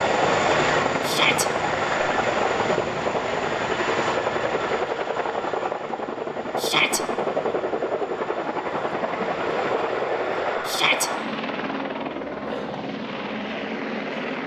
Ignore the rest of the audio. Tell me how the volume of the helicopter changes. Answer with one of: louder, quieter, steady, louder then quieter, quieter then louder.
quieter.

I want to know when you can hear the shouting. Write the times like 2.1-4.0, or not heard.
1.0-1.4, 6.5-7.0, 10.7-11.1.